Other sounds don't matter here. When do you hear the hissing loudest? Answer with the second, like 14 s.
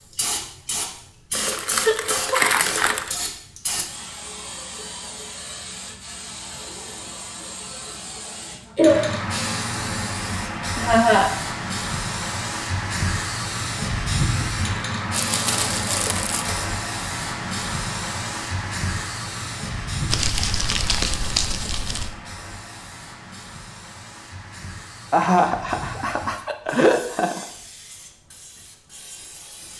9 s.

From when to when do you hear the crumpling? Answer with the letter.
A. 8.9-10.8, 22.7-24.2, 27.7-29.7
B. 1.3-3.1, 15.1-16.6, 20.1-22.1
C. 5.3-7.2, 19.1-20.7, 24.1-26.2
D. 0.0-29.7
B.